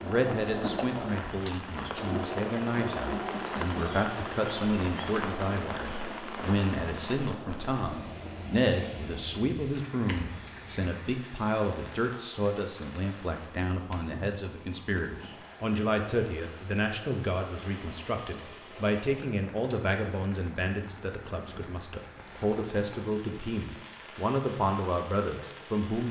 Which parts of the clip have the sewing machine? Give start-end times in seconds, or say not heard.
0.0-9.6.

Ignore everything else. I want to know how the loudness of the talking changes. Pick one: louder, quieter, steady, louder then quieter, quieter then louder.
steady.